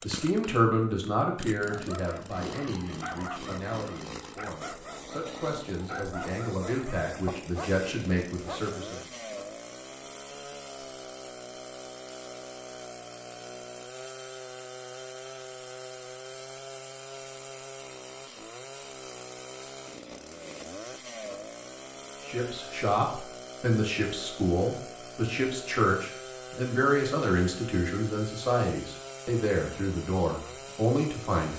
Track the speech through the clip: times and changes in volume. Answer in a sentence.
The speech can be heard from 0.0 to 9.0 s, getting quieter then louder; and from 22.2 to 31.5 s, at a steady volume.